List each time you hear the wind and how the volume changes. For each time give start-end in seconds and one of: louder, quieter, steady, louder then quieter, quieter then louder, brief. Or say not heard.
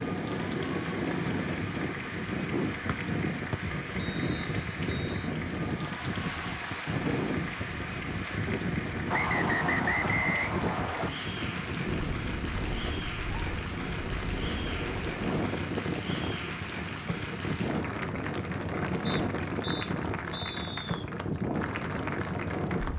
0.0-22.9 steady.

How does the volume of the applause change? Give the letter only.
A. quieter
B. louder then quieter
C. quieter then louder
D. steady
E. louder
D.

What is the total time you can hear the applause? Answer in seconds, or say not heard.
23 s.